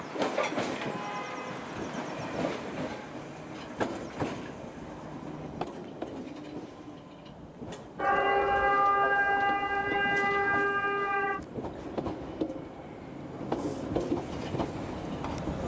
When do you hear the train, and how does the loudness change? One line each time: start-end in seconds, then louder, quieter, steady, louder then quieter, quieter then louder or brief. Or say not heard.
0.0-15.6 quieter then louder.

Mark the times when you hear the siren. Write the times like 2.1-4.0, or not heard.
8.0-11.4.